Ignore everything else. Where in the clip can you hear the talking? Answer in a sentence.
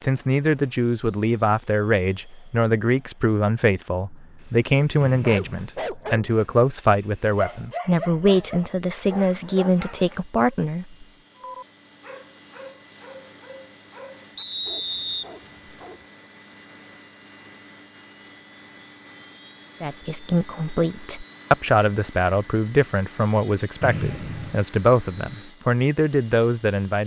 The talking can be heard from 0.0 to 11.1 s and from 19.8 to 27.0 s.